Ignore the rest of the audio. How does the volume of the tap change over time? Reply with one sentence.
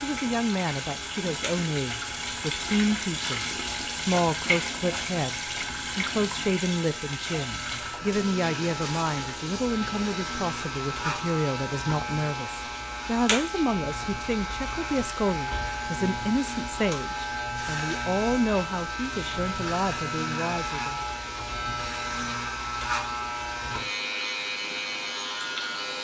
The loudness of the tap goes down.